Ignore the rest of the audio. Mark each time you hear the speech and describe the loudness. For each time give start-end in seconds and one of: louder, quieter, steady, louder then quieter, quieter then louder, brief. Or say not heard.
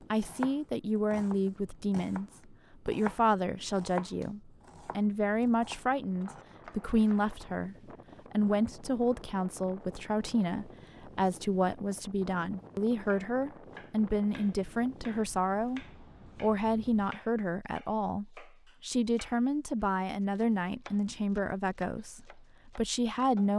0.1-23.5 steady.